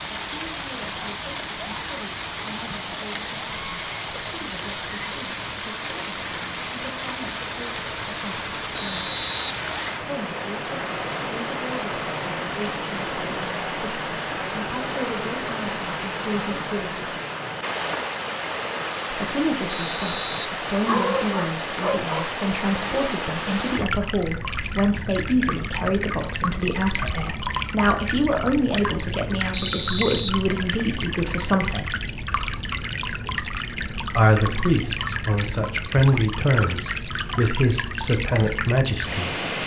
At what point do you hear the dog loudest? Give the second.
21 s.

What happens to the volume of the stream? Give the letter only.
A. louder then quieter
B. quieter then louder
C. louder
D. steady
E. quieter
D.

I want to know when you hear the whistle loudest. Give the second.
30 s.